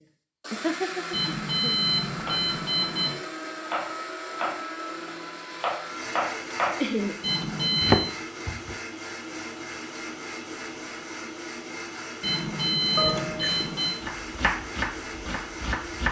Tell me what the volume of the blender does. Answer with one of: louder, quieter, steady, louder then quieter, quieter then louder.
steady.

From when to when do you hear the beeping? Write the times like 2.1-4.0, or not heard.
1.1-3.1, 7.2-8.1, 12.2-13.9.